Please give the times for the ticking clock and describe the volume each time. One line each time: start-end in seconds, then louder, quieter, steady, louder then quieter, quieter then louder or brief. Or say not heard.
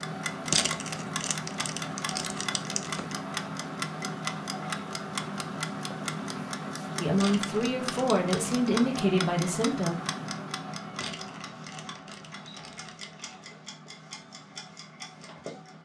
0.0-15.8 quieter.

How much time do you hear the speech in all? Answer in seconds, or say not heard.
3 s.